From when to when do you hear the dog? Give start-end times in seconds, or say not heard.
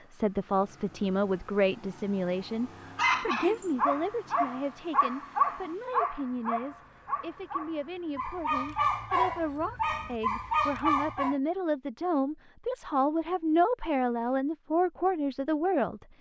3.0-11.3.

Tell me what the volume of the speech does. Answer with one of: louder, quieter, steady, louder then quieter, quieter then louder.
quieter then louder.